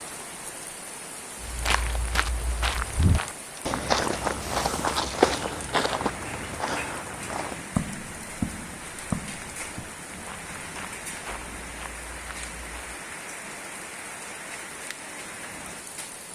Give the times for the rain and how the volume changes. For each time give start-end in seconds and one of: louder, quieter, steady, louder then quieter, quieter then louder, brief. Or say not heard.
0.0-16.3 steady.